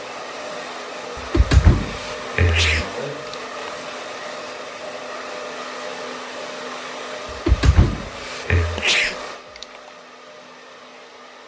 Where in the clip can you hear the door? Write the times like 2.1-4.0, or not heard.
1.1-2.9, 7.5-8.8.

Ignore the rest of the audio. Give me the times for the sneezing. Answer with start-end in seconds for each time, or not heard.
1.9-3.7, 8.2-9.9.